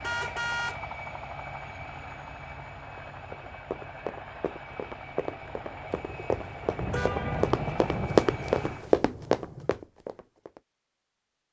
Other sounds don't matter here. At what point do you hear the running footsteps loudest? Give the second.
8 s.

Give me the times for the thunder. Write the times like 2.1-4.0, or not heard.
5.3-9.7.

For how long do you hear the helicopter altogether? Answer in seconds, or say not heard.
9 s.